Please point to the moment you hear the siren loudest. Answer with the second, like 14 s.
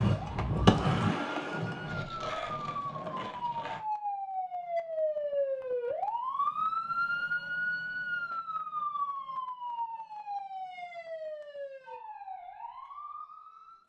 7 s.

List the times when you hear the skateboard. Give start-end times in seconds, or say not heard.
0.0-3.8.